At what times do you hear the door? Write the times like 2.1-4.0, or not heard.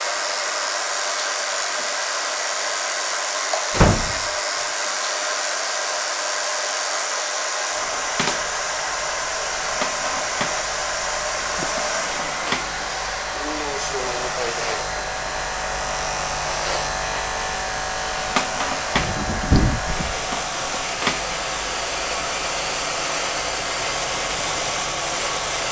3.7-4.2, 11.6-12.9, 18.9-20.1.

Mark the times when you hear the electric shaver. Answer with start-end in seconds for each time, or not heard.
0.0-25.6.